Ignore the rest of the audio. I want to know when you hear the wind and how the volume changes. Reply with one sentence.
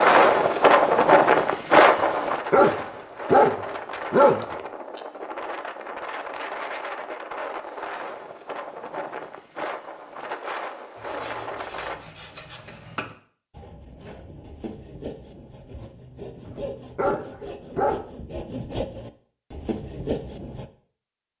The wind can be heard from 0.0 to 12.0 s, getting quieter.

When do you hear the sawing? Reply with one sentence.
The sawing can be heard from 10.9 to 20.7 s.